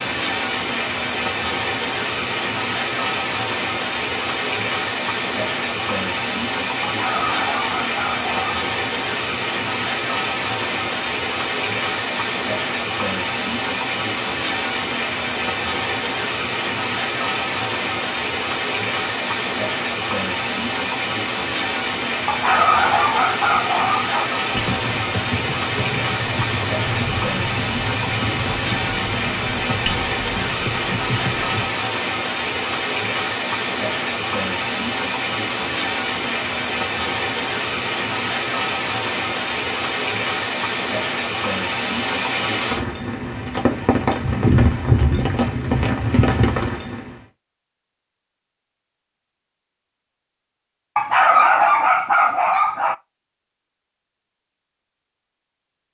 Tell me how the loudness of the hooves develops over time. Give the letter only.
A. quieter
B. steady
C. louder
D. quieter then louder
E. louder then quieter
B.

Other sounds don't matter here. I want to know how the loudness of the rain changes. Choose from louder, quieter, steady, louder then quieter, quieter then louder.
steady.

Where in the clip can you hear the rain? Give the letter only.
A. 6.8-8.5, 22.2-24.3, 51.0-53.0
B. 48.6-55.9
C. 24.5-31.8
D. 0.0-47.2
D.